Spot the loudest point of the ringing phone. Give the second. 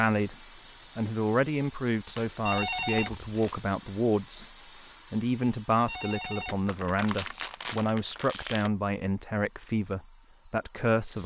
3 s.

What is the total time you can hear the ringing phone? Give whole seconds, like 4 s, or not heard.
2 s.